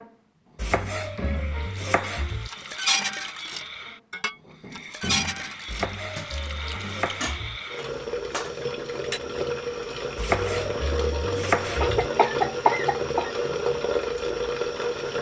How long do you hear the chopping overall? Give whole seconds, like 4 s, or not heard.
6 s.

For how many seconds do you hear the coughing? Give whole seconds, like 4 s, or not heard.
2 s.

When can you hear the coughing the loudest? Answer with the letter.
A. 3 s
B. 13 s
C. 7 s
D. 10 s
B.